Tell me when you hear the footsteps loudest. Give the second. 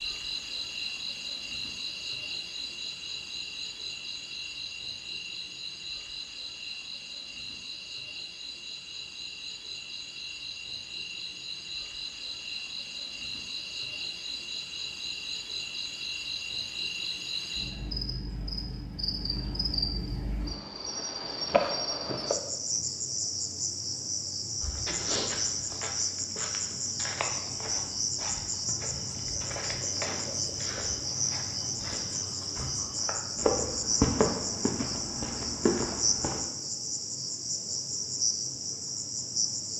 34 s.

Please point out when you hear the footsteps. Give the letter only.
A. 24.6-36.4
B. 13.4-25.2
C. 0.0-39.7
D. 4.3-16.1
A.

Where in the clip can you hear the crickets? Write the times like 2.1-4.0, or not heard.
0.0-39.7.